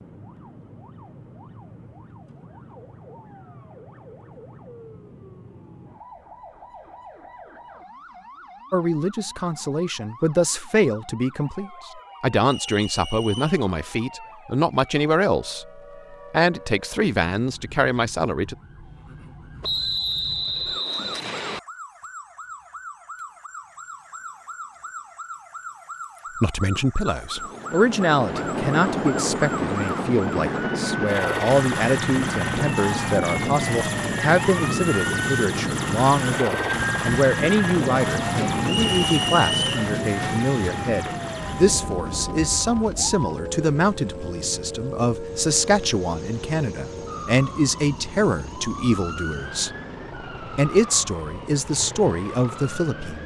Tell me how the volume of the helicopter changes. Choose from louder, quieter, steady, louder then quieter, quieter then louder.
quieter.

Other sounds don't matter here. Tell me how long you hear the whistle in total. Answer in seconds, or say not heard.
4 s.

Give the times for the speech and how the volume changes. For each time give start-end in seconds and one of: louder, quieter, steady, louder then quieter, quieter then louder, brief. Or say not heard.
8.7-18.6 steady
26.4-49.7 steady
50.4-53.2 brief.